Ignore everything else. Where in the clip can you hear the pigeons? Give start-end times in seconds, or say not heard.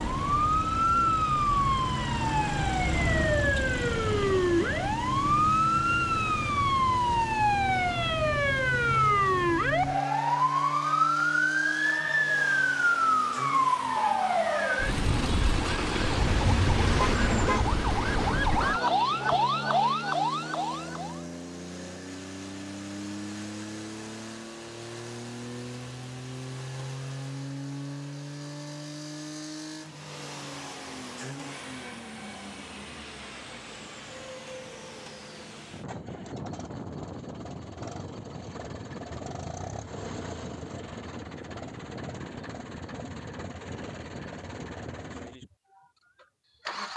not heard.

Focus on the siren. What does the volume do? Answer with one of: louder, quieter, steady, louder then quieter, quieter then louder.
steady.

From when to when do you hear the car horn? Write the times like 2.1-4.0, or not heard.
16.1-17.7.